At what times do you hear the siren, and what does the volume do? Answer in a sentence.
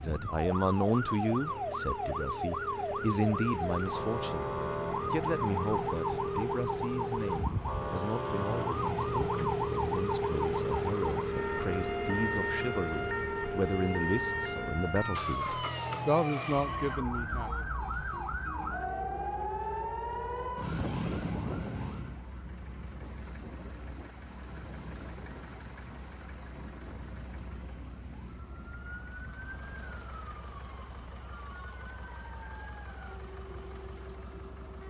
You can hear the siren from 0.0 to 34.8 s, getting quieter.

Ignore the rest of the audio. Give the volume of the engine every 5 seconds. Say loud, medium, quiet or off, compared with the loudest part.
medium, loud, loud, medium, quiet, quiet, quiet.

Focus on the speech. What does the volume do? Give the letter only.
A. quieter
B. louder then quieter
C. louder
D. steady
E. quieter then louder
E.